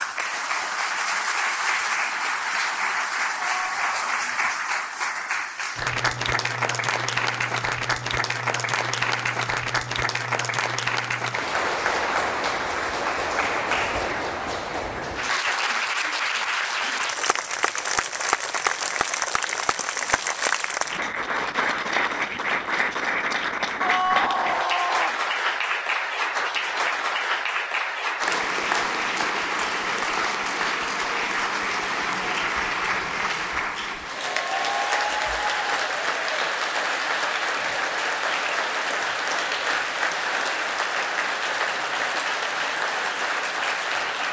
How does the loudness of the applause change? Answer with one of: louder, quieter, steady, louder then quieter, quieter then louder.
steady.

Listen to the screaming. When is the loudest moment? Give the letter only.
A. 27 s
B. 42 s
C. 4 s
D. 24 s
D.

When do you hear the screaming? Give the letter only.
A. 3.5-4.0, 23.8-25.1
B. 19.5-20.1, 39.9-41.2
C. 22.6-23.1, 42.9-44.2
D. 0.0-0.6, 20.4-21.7
A.